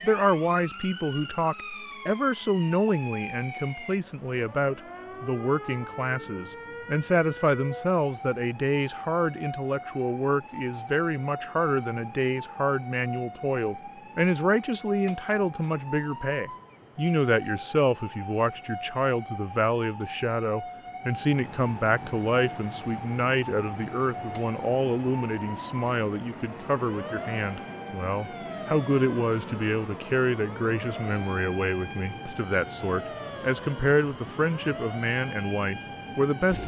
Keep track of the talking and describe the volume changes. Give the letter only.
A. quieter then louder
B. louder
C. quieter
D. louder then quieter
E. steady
E.